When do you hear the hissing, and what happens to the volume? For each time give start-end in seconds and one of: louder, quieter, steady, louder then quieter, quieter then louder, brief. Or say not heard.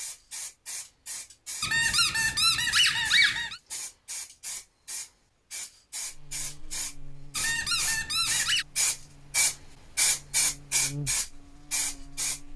0.0-12.4 louder.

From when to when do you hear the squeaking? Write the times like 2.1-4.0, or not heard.
1.6-3.6, 7.3-8.7.